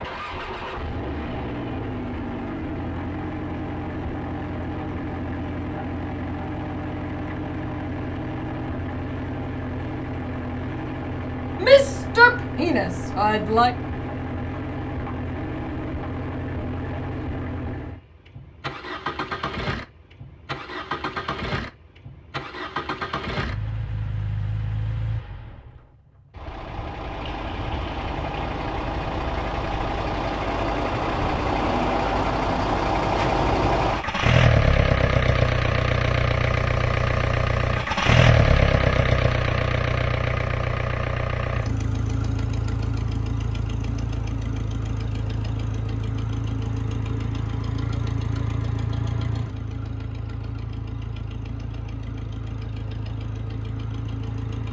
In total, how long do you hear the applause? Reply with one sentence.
The applause can't be heard in this clip.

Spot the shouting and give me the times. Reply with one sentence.
You can hear the shouting from 11.6 to 13.8 s.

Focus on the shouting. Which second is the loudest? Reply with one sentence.
The loudest moment of the shouting is at 12 seconds.